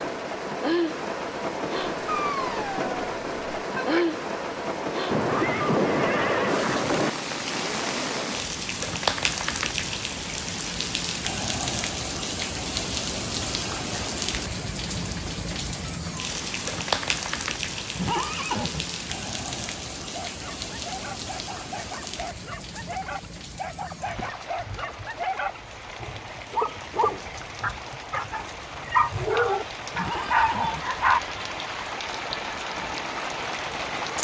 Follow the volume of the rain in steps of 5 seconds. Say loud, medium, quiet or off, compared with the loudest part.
loud, loud, loud, loud, medium, medium, loud.